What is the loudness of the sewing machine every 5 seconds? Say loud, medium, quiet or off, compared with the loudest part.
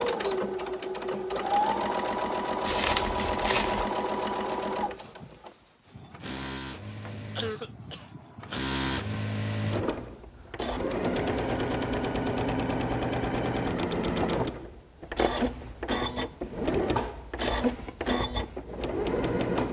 loud, medium, loud, loud.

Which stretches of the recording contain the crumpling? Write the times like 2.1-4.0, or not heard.
2.6-3.9.